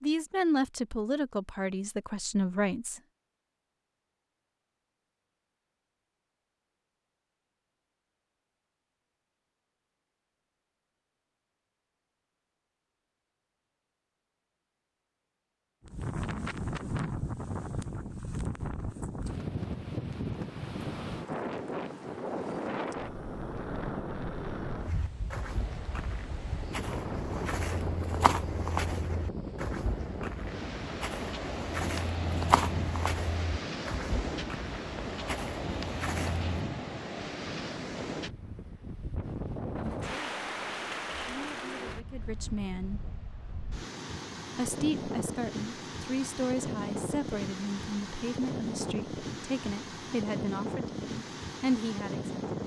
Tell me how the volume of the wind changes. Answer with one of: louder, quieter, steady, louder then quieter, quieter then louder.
steady.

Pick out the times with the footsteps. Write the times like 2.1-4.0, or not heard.
24.8-36.5.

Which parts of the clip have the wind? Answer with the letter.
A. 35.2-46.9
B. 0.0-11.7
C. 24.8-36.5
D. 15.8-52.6
D.